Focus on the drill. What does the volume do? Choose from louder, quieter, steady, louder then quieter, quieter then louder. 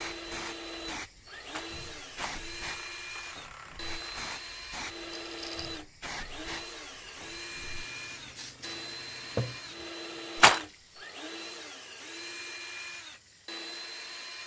steady.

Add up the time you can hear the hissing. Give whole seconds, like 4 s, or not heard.
14 s.